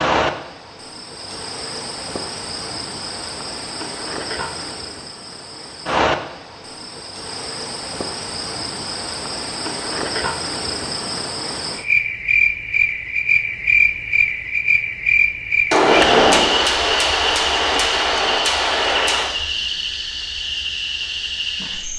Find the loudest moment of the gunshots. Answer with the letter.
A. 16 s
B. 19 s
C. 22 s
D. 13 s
A.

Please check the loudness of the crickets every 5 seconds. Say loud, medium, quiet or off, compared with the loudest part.
medium, medium, loud, loud, medium.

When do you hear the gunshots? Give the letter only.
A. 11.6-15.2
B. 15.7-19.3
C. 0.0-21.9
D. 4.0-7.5
B.